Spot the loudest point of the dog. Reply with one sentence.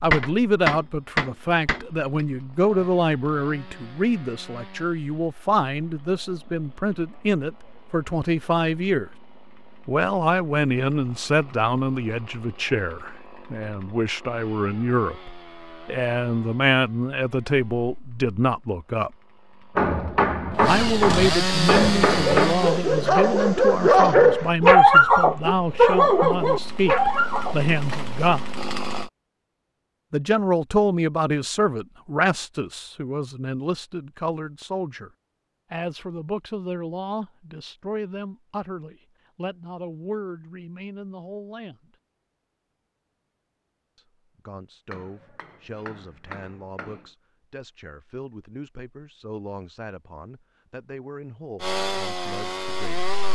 The volume of the dog peaks at 25 seconds.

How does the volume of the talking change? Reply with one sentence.
The loudness of the talking goes down.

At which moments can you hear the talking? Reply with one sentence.
The talking can be heard from 0.0 to 9.1 s, from 9.8 to 19.1 s, from 20.6 to 28.4 s, from 30.1 to 35.1 s, from 35.7 to 41.9 s and from 44.0 to 53.1 s.